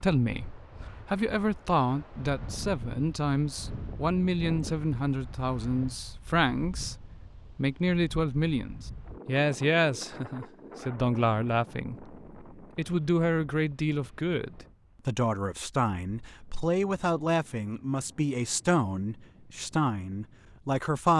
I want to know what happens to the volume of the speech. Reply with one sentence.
The loudness of the speech stays about the same.